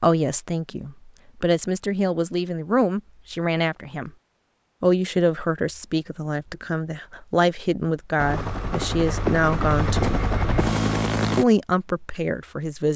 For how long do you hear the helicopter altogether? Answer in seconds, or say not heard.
3 s.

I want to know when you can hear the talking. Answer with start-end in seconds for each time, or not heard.
0.0-4.1, 4.8-10.3, 11.3-12.9.